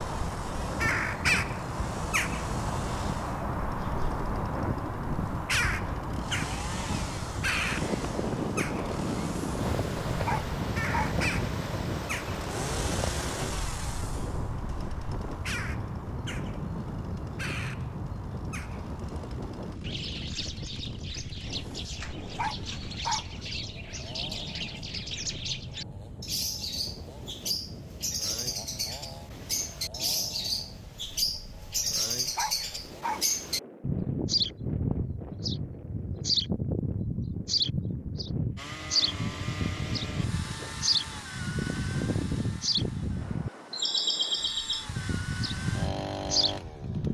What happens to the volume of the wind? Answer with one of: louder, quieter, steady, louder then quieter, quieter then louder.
quieter.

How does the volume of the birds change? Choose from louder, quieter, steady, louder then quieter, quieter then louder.
quieter then louder.